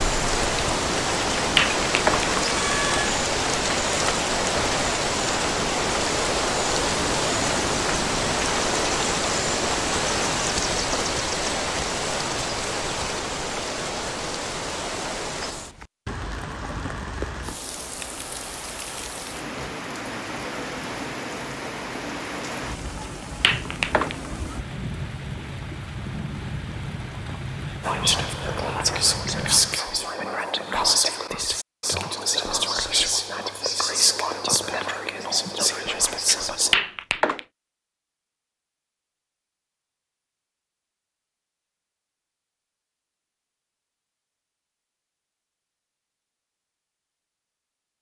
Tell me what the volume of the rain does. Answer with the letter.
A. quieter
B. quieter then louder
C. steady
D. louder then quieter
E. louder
A.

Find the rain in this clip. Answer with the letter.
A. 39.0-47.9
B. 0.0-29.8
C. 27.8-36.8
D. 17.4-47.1
B.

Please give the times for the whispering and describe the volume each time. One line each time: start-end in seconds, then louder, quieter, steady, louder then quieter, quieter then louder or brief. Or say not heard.
27.8-36.8 steady.